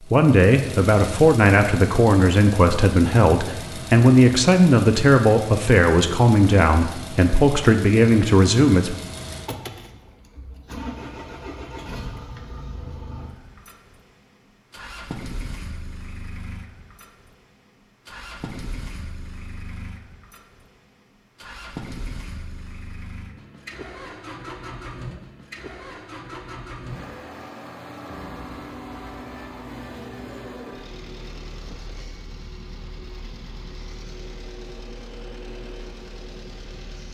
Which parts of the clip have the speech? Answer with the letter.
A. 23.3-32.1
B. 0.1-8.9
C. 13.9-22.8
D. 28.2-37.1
B.